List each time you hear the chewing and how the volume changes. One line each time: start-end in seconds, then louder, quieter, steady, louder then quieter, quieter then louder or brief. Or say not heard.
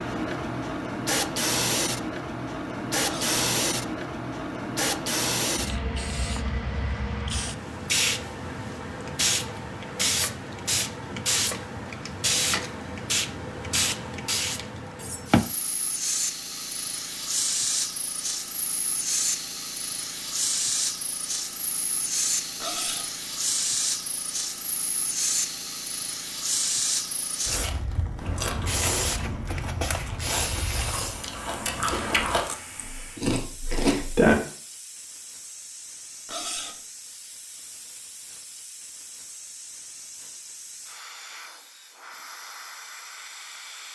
28.1-34.4 quieter then louder.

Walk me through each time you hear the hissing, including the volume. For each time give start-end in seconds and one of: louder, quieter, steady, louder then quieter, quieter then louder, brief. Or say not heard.
0.0-43.9 quieter.